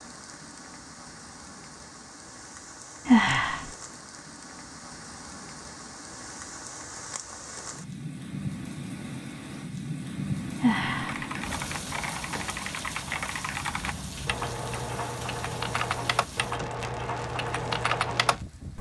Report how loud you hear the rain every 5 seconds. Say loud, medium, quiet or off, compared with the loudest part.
medium, loud, loud, medium.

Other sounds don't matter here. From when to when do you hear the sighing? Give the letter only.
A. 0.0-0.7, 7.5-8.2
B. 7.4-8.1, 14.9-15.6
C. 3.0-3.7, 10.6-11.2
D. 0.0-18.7
C.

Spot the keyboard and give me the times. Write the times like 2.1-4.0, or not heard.
11.0-18.7.